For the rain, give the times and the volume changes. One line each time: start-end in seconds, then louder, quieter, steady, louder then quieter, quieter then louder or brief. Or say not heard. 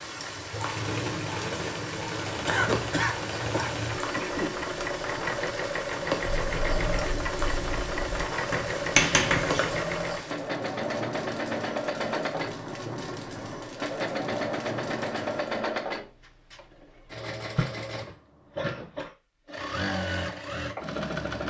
0.0-15.7 steady.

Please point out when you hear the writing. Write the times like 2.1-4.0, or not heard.
6.3-9.8.